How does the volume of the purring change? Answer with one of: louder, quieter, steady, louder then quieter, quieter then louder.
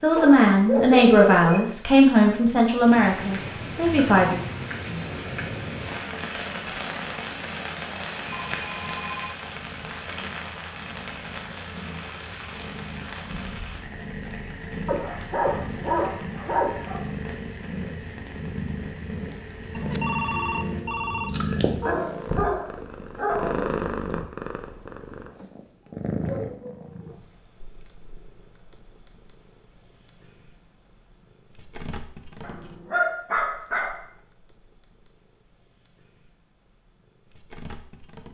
louder then quieter.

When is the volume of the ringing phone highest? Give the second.
20 s.